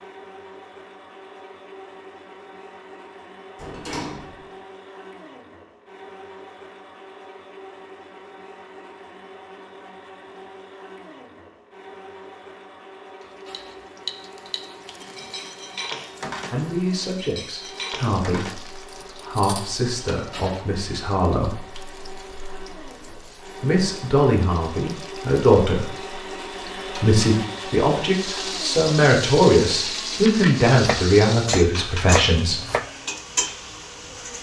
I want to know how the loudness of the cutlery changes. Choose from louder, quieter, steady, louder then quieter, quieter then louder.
quieter.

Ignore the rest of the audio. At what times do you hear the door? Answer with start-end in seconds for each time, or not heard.
3.5-4.5.